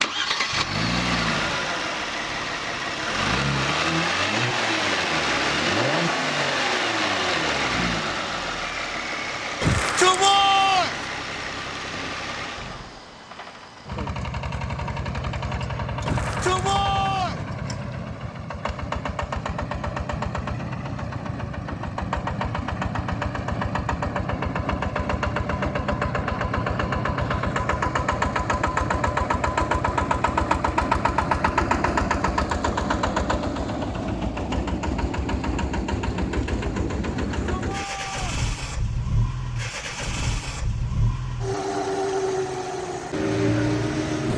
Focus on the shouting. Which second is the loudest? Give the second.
10 s.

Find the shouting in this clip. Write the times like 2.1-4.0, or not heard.
9.6-11.0, 16.1-17.4, 37.3-38.2.